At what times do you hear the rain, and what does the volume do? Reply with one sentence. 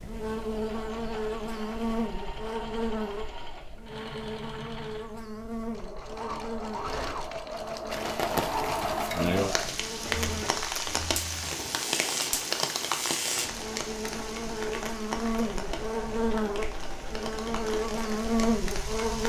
You can hear the rain from 7.9 to 19.2 s, getting quieter.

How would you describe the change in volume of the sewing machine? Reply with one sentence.
The loudness of the sewing machine goes up, then down.